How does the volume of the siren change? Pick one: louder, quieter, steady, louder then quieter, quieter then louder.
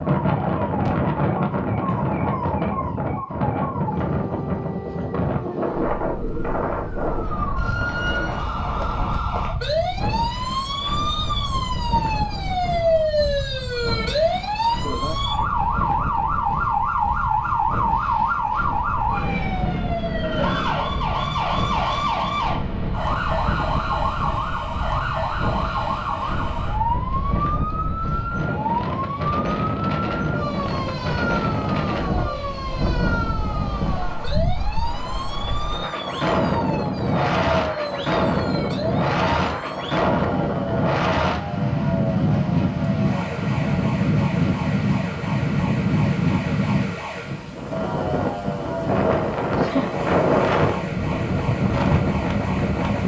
louder then quieter.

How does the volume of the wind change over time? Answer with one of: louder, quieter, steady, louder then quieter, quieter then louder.
quieter then louder.